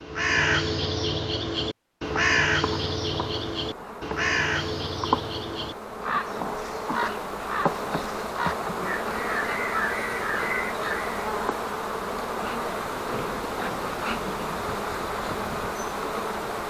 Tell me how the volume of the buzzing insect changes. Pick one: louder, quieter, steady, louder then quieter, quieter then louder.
steady.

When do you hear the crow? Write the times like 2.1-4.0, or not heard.
0.0-11.2.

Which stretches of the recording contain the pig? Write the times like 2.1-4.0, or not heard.
13.1-14.5.